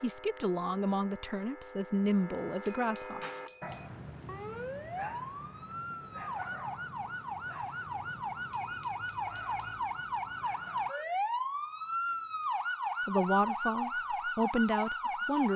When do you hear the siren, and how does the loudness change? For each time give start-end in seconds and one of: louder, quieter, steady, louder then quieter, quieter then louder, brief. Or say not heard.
0.0-15.5 louder.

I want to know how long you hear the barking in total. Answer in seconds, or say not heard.
8 s.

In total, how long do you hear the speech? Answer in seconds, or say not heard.
6 s.